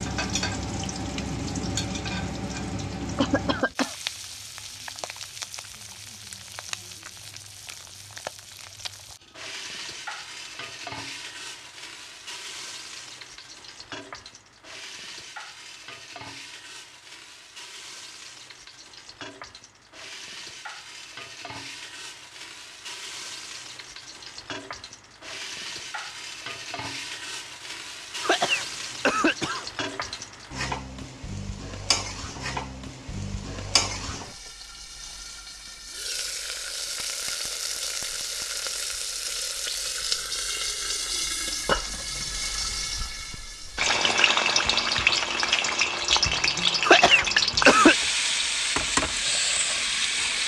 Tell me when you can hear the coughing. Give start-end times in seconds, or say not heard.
3.1-4.0, 28.2-29.6, 46.8-48.0.